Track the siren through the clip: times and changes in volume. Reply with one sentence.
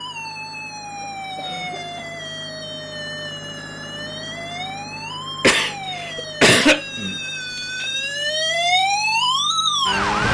You can hear the siren from 0.0 to 10.2 s, getting louder.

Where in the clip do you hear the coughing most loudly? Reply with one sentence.
The volume of the coughing peaks at 7 seconds.